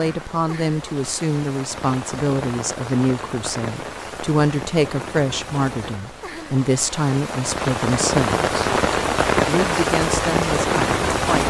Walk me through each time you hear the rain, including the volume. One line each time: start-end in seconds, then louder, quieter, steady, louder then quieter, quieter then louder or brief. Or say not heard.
0.0-11.4 louder.